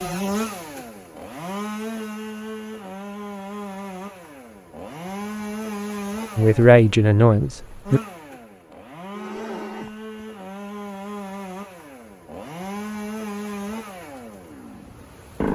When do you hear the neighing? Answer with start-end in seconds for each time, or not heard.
8.7-10.2.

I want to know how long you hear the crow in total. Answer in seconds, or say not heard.
not heard.